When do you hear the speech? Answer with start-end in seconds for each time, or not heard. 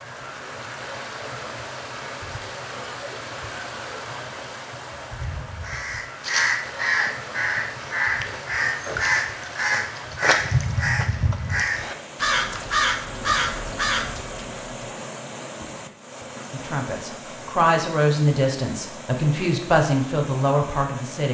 16.5-21.3.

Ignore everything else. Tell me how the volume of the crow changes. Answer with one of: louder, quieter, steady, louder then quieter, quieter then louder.
steady.